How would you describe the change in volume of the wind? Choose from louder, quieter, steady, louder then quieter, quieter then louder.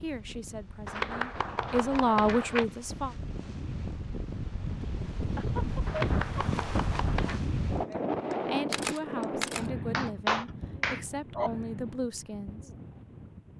louder then quieter.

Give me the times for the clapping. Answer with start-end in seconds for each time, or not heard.
0.8-2.6, 5.8-7.4, 9.9-11.5.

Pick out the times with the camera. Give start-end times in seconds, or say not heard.
8.7-9.7.